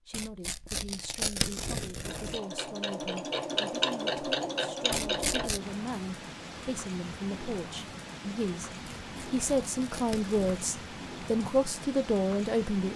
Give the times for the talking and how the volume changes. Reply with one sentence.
The talking can be heard from 0.1 to 12.9 s, getting louder.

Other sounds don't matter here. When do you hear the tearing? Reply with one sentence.
The tearing can be heard from 0.1 to 2.4 s, from 4.9 to 5.6 s and from 8.9 to 10.7 s.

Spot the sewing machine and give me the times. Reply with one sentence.
The sewing machine can be heard from 2.0 to 5.5 s.